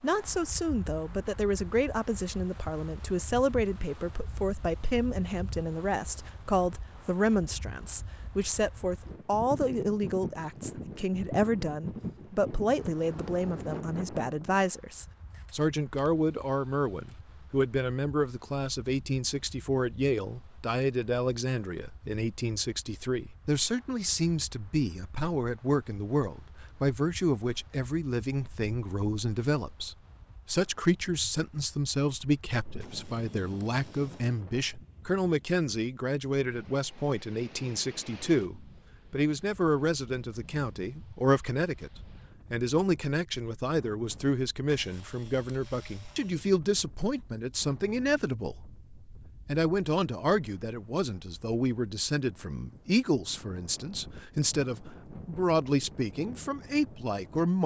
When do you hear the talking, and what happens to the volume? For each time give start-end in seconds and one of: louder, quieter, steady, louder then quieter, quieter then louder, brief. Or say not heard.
0.0-57.6 steady.